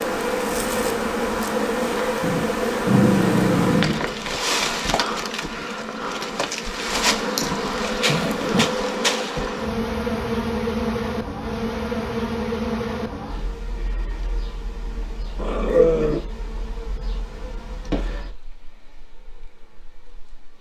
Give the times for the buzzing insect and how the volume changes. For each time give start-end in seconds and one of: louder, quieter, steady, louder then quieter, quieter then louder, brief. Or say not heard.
0.0-20.5 quieter.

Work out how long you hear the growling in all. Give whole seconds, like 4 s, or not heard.
3 s.